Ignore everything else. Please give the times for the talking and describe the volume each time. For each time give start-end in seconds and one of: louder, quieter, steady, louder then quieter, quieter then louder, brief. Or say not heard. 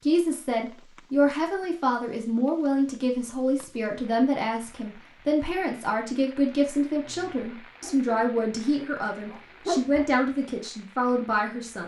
0.1-11.8 steady.